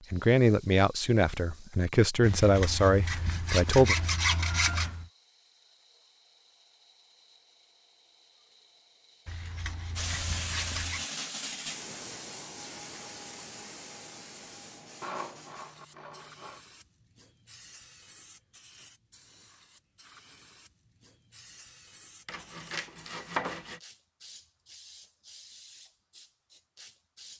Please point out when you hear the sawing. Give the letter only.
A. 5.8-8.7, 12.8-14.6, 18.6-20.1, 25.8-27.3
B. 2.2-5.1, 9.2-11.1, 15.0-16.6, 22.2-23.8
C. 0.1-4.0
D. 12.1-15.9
B.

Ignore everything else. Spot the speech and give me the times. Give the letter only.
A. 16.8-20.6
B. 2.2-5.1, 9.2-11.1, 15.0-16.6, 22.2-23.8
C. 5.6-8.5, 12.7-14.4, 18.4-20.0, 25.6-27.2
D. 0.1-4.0
D.